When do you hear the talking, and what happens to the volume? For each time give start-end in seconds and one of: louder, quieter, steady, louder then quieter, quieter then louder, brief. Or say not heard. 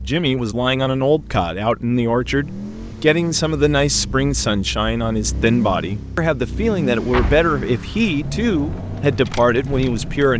0.0-10.3 steady.